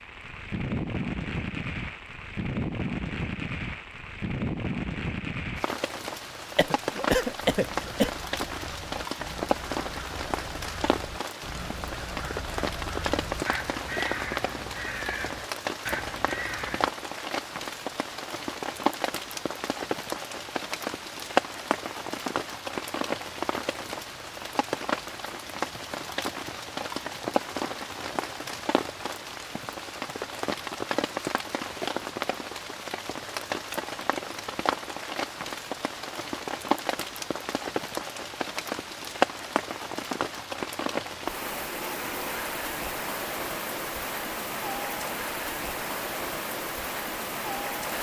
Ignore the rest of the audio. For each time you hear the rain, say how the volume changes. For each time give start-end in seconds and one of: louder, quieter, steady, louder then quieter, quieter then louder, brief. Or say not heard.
0.0-47.9 steady.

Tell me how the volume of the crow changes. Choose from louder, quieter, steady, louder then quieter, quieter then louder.
louder.